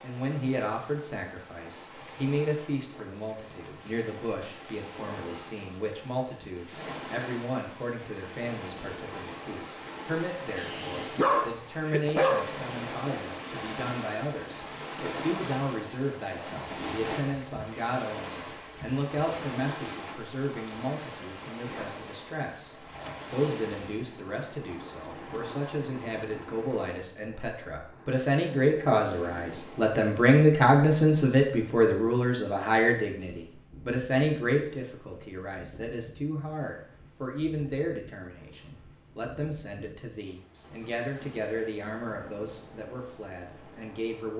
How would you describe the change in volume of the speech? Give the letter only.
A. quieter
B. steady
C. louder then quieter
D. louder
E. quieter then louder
C.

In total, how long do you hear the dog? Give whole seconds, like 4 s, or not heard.
2 s.